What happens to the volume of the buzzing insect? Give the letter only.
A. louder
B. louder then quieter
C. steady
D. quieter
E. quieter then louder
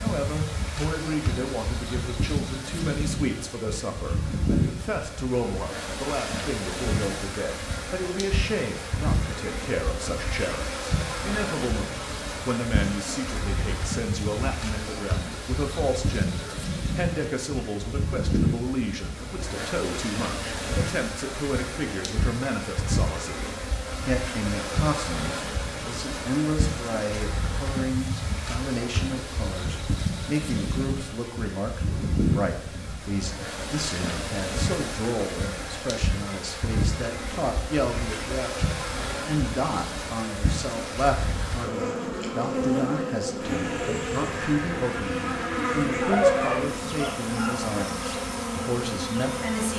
C.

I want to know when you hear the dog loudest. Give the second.
46 s.